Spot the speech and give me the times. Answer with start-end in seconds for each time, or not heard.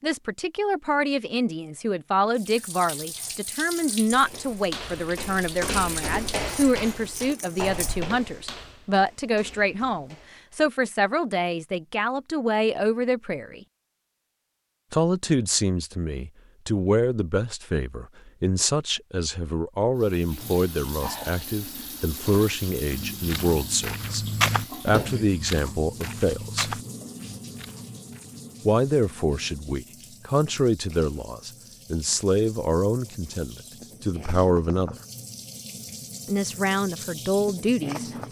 0.0-13.6, 14.9-24.2, 24.9-26.8, 28.6-35.0, 36.2-38.2.